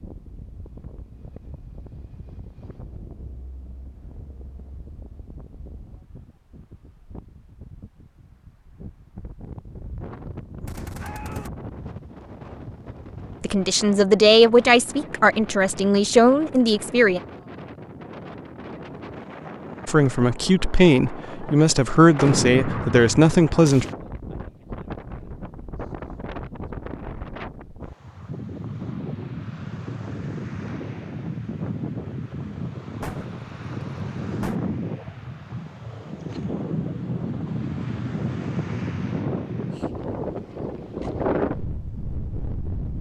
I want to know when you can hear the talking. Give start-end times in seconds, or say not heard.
13.4-17.2, 19.9-23.9.